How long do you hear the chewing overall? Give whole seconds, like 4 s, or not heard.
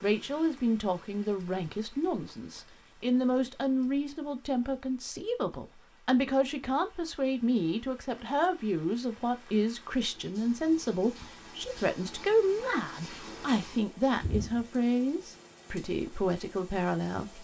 not heard.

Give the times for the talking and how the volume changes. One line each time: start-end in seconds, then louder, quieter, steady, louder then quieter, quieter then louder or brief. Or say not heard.
0.0-17.3 steady.